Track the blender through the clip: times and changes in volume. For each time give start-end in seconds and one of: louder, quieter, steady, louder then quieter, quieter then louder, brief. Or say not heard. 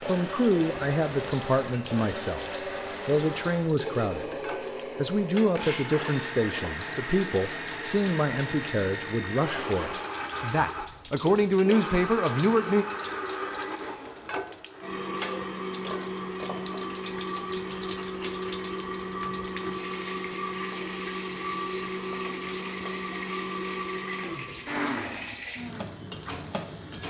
0.0-27.0 steady.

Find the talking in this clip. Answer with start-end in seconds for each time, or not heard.
0.1-2.5, 3.0-4.3, 5.0-12.8.